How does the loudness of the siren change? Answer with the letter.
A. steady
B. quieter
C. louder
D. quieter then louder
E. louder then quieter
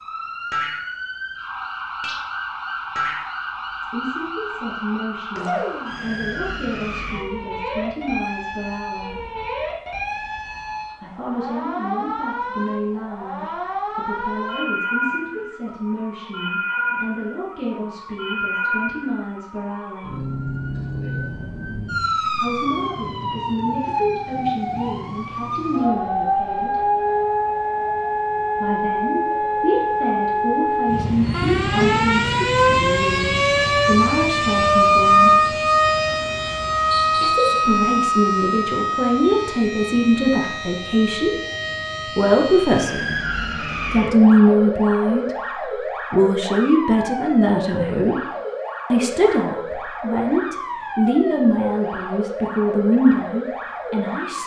E.